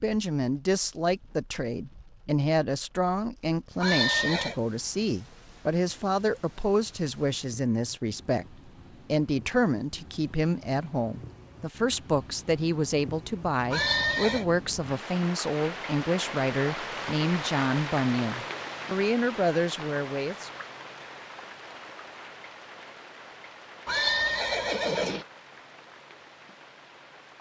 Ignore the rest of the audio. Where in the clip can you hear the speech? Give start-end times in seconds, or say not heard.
0.0-20.5.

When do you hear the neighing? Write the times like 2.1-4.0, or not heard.
3.8-4.5, 13.7-14.4, 23.9-25.2.